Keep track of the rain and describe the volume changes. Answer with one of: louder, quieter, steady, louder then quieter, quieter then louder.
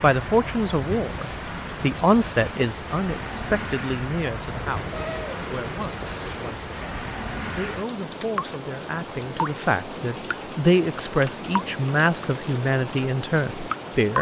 steady.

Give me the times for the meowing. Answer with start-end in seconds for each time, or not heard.
4.5-6.5.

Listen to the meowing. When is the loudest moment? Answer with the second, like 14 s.
5 s.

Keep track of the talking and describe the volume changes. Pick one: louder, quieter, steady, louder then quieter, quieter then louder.
quieter then louder.